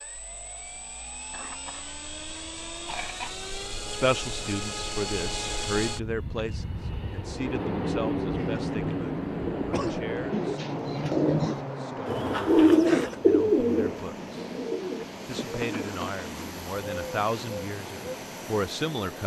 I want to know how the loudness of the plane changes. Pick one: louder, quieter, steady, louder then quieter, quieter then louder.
louder then quieter.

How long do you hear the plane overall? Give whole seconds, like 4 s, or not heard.
19 s.